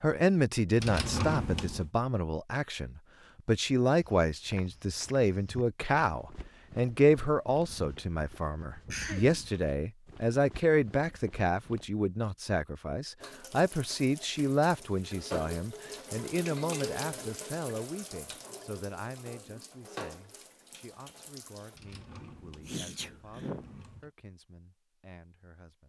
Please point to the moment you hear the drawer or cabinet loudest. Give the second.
1 s.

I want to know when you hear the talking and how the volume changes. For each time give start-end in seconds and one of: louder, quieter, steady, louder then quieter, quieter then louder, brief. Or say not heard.
0.0-25.8 quieter.